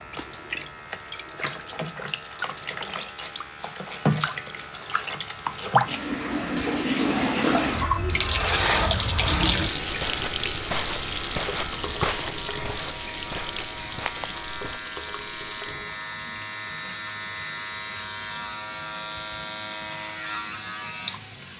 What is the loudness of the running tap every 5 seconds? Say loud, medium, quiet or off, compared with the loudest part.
medium, loud, medium, quiet, quiet.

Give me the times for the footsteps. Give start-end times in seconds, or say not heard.
9.7-14.8.